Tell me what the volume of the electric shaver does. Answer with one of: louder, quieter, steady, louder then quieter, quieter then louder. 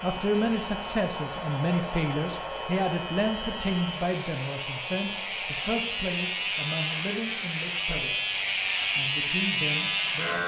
louder.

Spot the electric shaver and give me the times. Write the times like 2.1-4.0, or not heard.
0.0-10.4.